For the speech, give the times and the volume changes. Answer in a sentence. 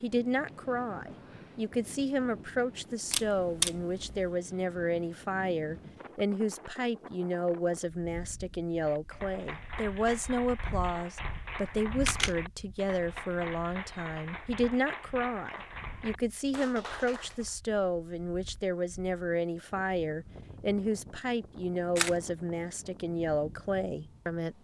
You can hear the speech from 0.0 to 24.5 s, at a steady volume.